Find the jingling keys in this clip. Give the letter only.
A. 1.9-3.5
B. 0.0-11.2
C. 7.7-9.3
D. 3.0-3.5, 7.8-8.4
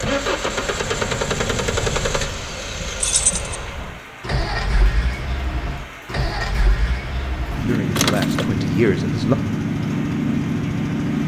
D.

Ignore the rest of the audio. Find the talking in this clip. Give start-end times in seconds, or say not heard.
7.7-9.3.